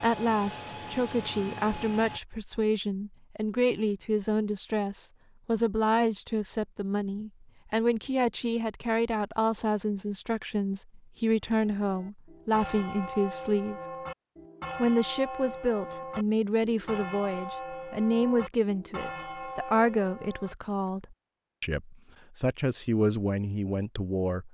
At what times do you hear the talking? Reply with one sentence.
The talking can be heard from 0.0 to 13.8 s and from 14.8 to 24.4 s.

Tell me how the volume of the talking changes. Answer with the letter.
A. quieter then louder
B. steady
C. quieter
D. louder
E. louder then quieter
B.